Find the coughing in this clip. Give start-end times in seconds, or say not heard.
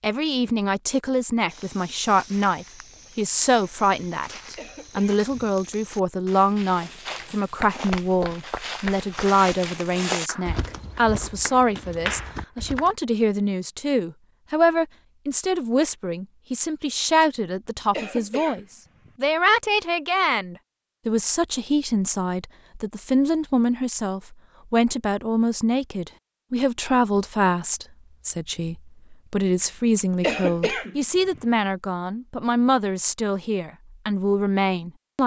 4.5-5.3, 17.9-19.1, 30.2-31.4.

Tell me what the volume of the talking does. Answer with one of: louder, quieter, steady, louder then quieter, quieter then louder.
steady.